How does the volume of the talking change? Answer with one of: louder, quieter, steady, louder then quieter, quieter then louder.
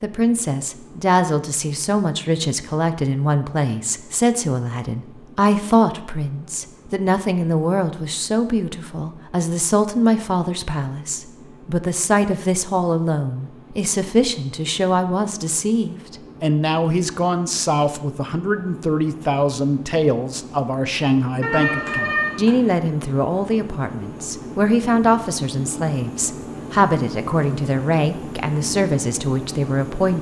steady.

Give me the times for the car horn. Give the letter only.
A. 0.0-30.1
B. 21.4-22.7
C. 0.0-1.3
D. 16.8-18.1
B.